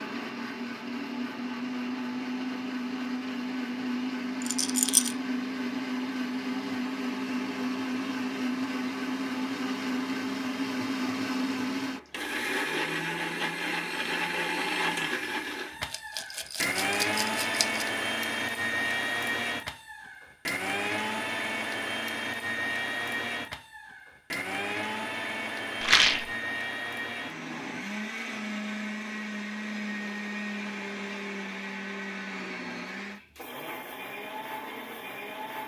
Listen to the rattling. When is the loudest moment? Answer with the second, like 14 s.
26 s.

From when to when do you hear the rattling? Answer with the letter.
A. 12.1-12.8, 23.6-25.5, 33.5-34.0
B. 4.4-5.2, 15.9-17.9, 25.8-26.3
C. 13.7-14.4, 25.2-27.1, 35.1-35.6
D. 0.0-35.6
B.